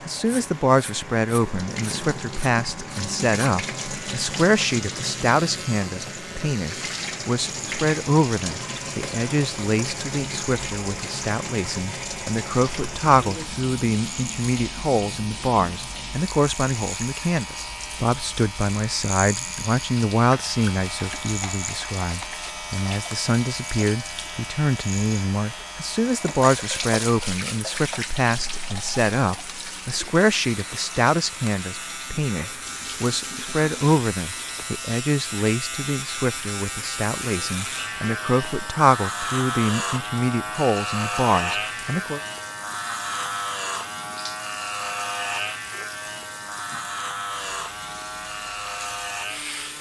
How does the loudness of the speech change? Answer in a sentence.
The volume of the speech stays about the same.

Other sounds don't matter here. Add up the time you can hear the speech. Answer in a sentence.
The speech can be heard for 42 seconds in total.